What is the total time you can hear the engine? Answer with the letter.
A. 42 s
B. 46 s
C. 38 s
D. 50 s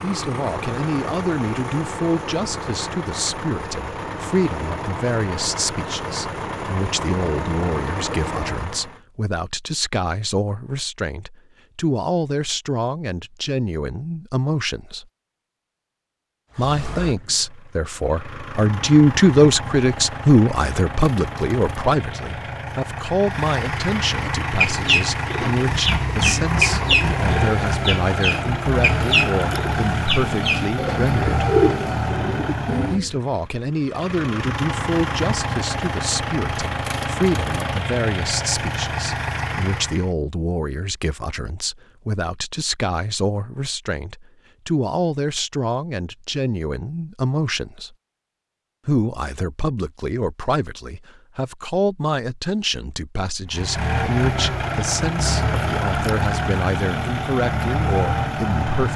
C.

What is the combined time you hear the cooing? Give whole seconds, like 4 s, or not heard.
9 s.